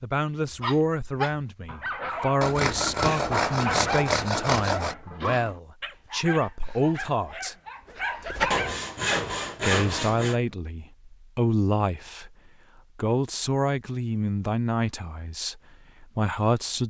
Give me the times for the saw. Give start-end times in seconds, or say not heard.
2.4-5.0, 8.5-10.4.